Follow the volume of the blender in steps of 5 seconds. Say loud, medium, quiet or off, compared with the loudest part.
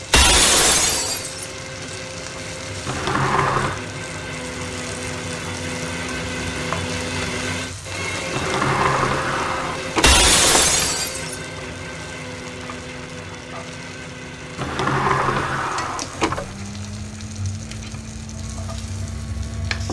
medium, loud, medium, medium.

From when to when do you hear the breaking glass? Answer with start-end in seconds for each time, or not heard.
0.1-1.4, 10.0-11.3.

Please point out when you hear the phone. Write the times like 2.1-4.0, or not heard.
not heard.